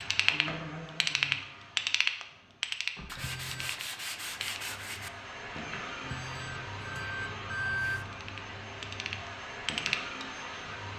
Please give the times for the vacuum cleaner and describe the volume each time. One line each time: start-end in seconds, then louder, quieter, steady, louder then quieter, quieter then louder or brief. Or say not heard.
0.0-10.9 quieter then louder.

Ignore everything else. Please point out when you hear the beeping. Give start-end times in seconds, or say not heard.
3.1-3.8, 6.0-8.1.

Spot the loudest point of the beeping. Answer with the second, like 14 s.
8 s.